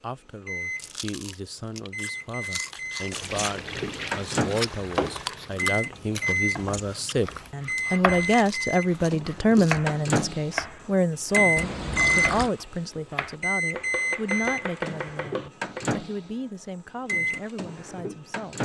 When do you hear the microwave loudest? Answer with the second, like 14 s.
12 s.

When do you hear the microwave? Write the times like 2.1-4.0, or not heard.
0.5-6.7, 7.7-12.2, 13.4-18.5.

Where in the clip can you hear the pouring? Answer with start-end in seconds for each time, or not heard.
3.1-5.7, 11.6-12.5.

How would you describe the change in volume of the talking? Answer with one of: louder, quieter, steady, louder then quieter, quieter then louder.
louder then quieter.